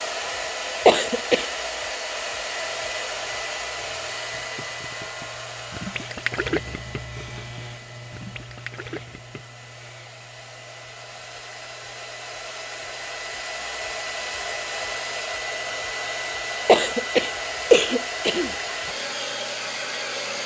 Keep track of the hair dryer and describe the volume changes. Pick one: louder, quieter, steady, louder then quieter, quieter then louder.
quieter then louder.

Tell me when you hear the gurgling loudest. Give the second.
6 s.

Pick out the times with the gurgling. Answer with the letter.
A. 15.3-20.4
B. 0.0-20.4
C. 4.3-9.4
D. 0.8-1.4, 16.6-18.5
C.